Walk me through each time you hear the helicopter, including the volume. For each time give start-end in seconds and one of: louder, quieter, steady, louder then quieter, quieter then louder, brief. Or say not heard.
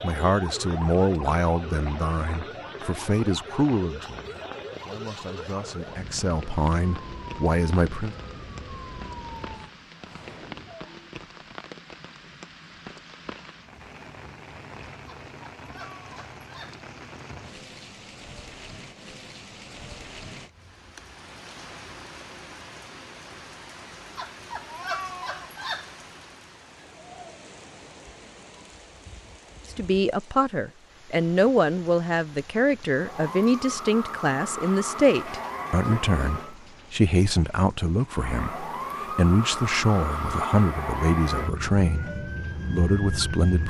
not heard.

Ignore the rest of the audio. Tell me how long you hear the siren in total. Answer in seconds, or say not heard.
20 s.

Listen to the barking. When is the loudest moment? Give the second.
25 s.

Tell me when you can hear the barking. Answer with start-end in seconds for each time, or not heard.
15.1-16.8, 24.1-25.9.